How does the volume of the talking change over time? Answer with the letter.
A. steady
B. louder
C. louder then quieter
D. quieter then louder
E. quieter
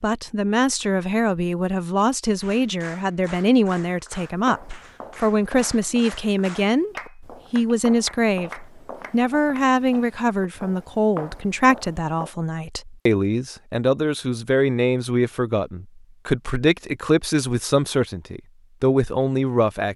A.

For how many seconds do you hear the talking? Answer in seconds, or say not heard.
20 s.